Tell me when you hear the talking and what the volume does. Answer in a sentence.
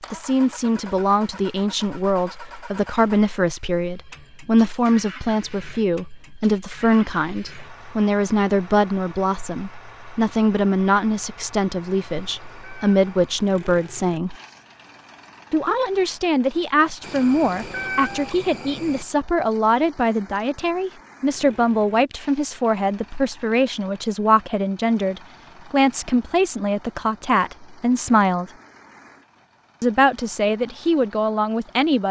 You can hear the talking from 0.1 to 14.3 s, at a steady volume; from 15.5 to 28.5 s, at a steady volume; and briefly from 29.8 to 32.0 s.